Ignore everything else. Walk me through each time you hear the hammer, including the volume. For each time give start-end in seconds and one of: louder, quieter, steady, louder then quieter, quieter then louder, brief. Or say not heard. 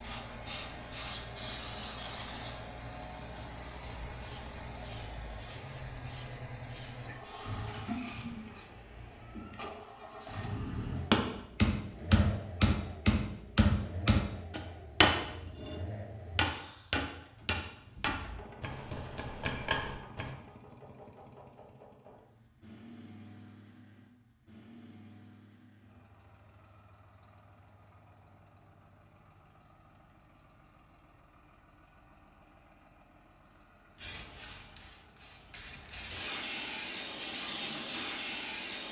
10.9-20.4 quieter.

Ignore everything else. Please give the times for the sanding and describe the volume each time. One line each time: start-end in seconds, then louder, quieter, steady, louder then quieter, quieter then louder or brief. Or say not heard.
not heard.